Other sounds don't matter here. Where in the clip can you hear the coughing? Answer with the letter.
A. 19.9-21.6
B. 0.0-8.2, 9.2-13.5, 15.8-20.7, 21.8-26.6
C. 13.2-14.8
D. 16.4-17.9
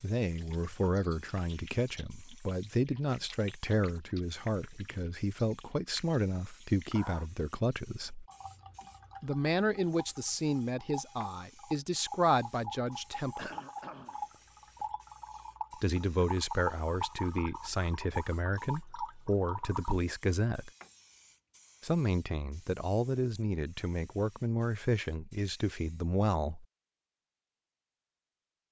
C.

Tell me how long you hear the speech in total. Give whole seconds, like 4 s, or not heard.
22 s.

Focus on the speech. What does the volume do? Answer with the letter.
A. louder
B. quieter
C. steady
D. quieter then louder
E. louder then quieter
C.